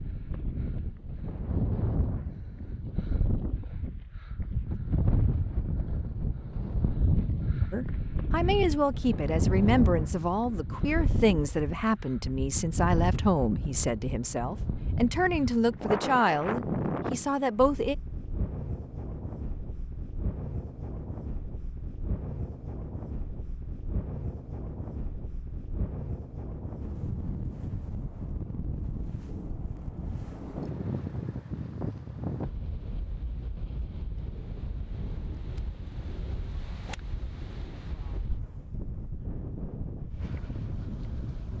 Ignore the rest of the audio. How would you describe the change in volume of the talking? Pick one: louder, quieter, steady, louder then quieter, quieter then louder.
steady.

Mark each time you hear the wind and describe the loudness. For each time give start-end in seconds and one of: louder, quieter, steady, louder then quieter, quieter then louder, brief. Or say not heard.
0.0-41.5 quieter.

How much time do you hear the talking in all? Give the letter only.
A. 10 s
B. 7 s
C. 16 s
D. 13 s
A.